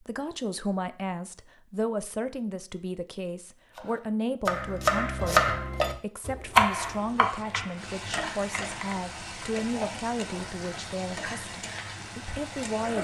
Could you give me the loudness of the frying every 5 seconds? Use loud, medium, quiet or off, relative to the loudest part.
off, loud, loud.